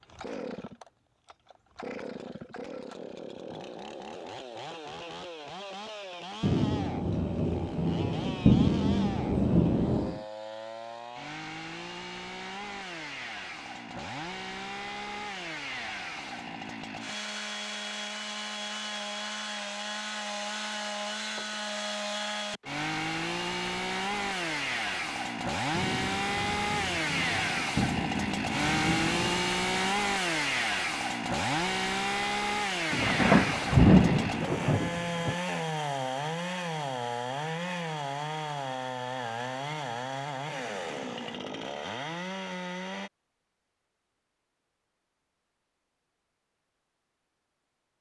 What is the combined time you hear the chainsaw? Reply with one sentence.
You can hear the chainsaw for 43 seconds altogether.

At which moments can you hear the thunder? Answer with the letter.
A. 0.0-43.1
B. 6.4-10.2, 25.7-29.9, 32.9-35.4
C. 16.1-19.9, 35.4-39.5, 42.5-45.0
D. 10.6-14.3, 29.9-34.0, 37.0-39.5
B.